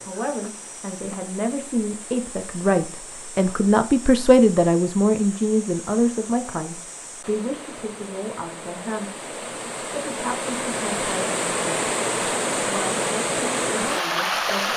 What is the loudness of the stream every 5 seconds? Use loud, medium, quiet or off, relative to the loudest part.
quiet, quiet, loud.